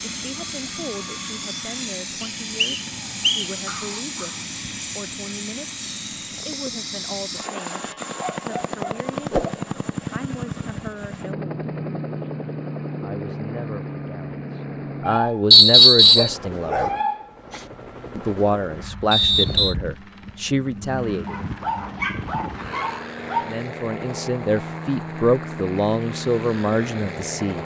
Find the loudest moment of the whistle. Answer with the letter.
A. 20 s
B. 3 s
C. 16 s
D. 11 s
C.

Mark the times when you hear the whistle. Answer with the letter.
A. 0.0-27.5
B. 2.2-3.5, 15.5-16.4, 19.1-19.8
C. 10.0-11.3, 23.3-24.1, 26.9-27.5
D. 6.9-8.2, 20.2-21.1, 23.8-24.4
B.